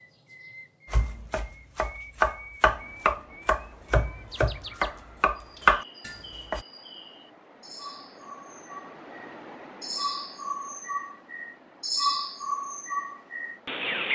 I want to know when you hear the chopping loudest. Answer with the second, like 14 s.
6 s.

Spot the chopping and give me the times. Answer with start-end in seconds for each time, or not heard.
0.9-6.7.